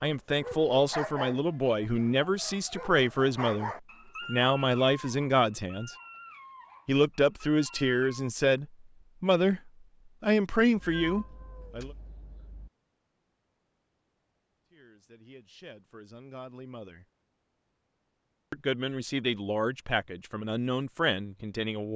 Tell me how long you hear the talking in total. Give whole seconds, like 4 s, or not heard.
17 s.